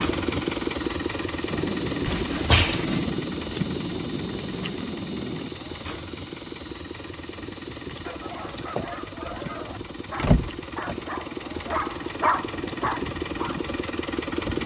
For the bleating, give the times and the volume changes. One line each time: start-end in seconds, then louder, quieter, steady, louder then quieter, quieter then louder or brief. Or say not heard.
not heard.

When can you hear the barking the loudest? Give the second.
12 s.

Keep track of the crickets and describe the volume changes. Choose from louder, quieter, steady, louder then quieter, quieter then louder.
quieter.